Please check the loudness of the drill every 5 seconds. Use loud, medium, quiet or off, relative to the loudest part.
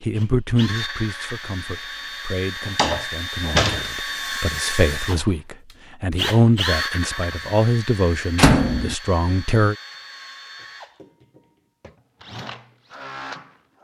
loud, loud, medium.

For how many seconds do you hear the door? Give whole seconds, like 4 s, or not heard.
2 s.